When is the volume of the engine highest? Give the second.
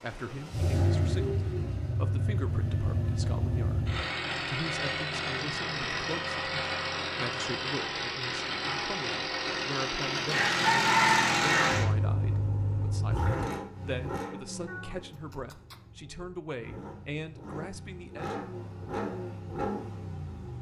11 s.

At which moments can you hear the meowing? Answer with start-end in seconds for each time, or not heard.
14.7-15.9.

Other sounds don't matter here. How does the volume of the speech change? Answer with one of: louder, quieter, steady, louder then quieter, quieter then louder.
steady.